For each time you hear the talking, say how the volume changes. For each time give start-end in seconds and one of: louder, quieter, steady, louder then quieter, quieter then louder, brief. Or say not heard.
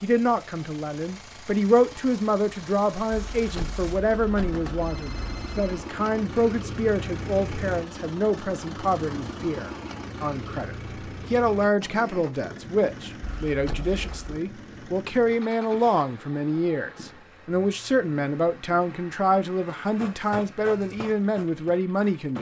0.0-22.3 steady.